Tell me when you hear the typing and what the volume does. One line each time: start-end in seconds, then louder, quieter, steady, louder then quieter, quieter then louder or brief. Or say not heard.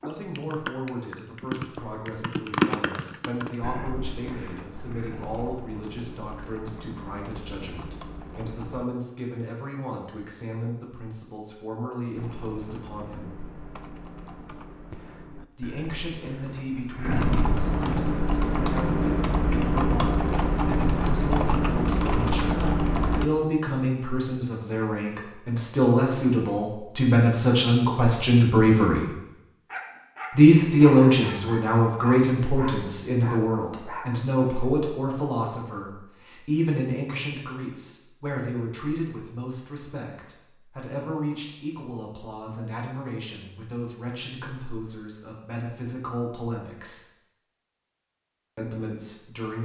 0.0-8.8 louder then quieter
12.2-23.3 louder.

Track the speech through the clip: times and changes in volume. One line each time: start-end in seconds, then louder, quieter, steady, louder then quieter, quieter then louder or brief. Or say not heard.
0.0-13.3 steady
15.5-29.1 louder
30.3-47.0 quieter
48.5-49.6 brief.